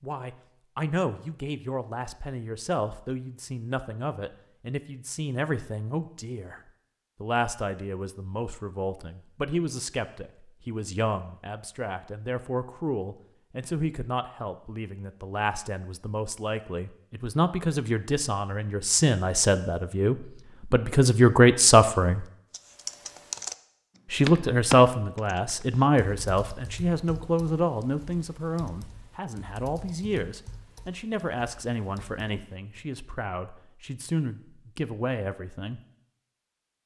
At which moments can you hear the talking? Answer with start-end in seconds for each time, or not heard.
0.0-6.6, 7.2-22.2, 24.1-35.8.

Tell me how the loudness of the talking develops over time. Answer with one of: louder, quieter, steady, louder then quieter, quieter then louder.
louder then quieter.